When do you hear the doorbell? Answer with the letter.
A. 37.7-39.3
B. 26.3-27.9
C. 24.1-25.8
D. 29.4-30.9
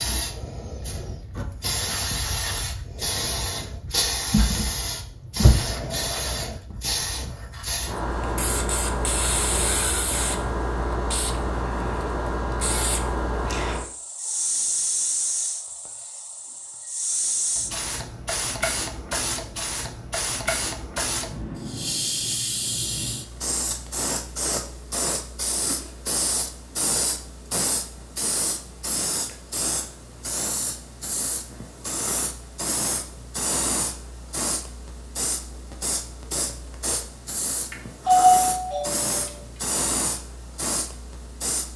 A.